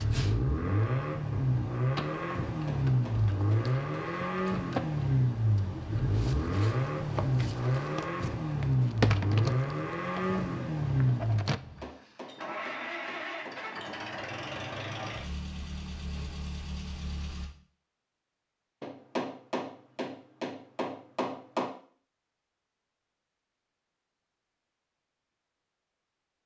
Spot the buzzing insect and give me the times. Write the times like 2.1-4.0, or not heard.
0.0-11.6.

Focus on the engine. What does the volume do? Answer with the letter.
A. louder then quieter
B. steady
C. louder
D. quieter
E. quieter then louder
D.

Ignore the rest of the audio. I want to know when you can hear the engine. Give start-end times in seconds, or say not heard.
0.0-17.5.